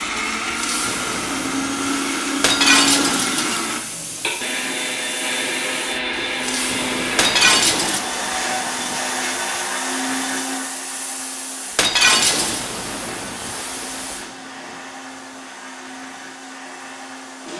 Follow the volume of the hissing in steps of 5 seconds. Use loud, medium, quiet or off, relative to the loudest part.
loud, loud, loud, quiet.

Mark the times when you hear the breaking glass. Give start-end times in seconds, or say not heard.
2.4-3.7, 7.2-8.0, 11.8-12.7.